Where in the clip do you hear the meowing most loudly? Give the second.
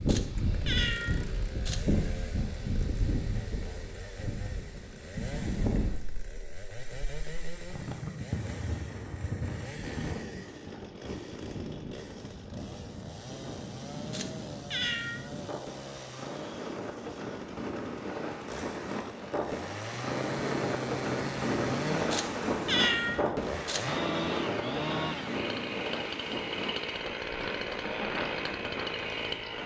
23 s.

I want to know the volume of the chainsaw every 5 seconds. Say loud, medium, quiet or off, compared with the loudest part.
medium, medium, medium, medium, loud, loud.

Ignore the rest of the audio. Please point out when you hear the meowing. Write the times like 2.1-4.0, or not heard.
0.1-1.9, 14.1-15.3, 22.1-23.9.